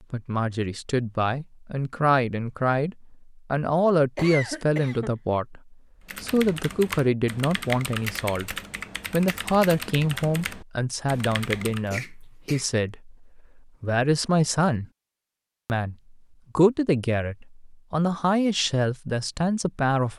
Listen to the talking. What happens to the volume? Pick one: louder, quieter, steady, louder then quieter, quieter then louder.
steady.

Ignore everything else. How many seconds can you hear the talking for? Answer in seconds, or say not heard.
19 s.